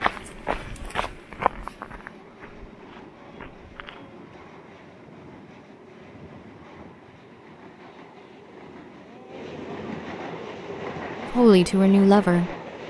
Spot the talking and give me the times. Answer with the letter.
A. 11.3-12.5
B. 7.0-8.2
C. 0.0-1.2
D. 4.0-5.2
A.